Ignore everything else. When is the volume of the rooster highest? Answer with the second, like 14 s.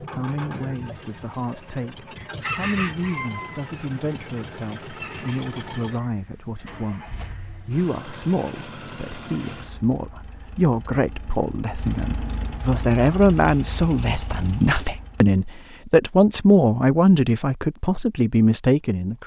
3 s.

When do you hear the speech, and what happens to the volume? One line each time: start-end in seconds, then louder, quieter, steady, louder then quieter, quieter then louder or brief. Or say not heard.
0.0-19.2 louder.